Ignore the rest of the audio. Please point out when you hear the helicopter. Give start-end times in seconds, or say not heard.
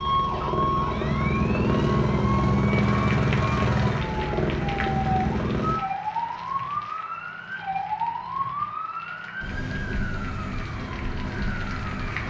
0.0-5.8.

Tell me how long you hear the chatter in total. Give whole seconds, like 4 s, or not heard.
not heard.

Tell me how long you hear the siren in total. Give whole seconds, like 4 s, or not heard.
12 s.